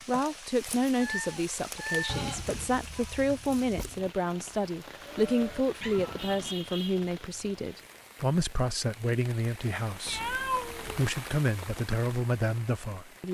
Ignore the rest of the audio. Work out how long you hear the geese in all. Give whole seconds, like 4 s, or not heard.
not heard.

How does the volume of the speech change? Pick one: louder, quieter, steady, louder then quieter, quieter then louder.
steady.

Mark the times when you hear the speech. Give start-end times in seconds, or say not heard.
0.1-13.2.